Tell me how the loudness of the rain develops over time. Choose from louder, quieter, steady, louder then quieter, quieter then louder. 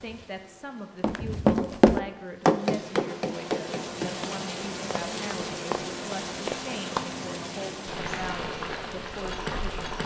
louder.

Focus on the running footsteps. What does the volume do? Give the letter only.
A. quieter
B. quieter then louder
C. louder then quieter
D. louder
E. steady
B.